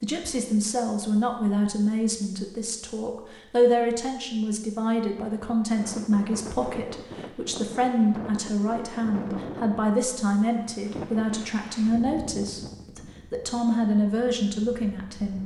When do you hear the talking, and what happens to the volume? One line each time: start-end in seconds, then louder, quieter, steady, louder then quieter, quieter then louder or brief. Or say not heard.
0.0-15.4 steady.